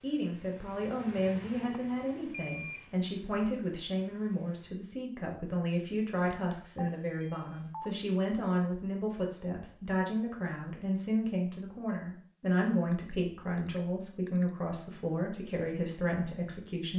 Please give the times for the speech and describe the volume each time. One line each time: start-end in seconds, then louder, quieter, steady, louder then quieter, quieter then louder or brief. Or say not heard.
0.0-16.9 steady.